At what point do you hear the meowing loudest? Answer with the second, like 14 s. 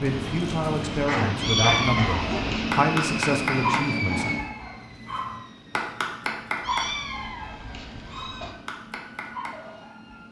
2 s.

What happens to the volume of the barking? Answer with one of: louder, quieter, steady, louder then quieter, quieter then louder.
quieter.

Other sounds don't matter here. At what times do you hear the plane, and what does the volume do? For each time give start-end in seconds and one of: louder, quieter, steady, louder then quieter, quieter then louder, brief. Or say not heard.
0.0-10.2 quieter.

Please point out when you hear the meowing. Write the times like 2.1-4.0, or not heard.
1.4-2.8, 6.6-8.6.